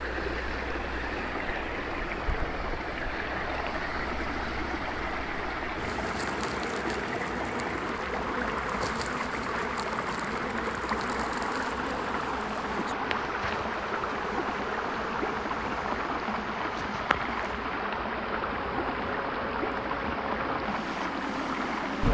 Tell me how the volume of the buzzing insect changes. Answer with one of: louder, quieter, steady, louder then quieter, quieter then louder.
louder.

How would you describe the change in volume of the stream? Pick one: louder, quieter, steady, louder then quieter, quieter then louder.
steady.